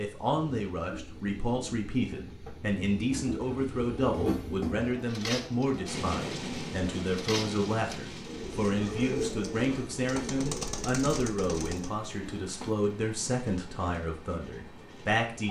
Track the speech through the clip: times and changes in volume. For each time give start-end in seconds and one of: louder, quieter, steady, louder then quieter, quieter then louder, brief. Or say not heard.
0.0-15.4 steady.